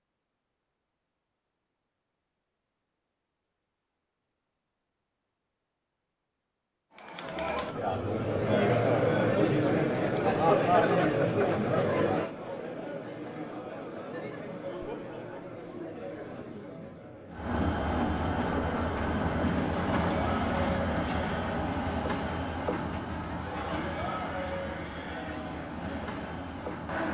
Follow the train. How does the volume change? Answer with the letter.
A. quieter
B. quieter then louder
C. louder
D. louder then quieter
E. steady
A.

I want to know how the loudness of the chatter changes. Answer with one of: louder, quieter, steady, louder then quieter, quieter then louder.
quieter.